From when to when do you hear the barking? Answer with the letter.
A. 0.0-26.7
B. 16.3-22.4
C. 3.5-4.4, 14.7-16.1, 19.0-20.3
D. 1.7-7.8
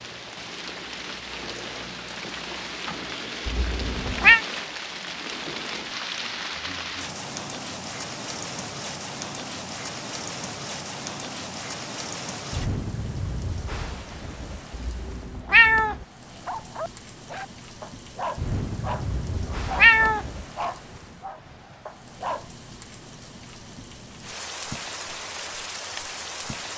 B.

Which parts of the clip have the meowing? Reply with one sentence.
You can hear the meowing from 3.5 to 4.4 s, from 14.7 to 16.1 s and from 19.0 to 20.3 s.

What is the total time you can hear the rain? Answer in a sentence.
You can hear the rain for 27 seconds altogether.